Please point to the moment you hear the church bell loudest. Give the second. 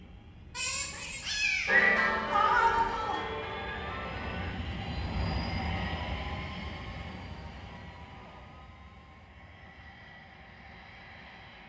2 s.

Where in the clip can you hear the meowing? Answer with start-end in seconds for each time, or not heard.
0.6-3.2.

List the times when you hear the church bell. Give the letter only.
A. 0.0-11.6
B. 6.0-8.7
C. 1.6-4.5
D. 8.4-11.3
C.